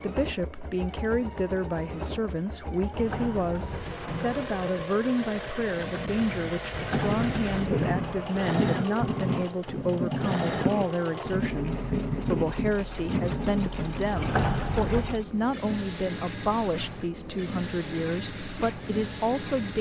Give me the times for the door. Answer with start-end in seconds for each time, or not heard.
2.9-4.8, 6.7-8.5, 14.2-15.2.